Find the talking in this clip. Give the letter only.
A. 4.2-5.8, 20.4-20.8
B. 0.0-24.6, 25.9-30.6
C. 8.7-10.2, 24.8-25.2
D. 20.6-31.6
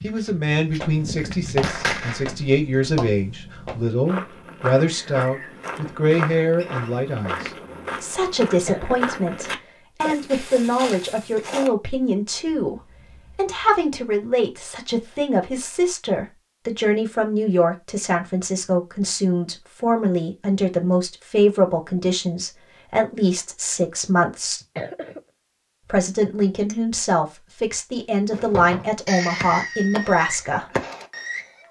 B.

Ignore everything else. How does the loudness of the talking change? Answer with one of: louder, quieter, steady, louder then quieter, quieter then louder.
steady.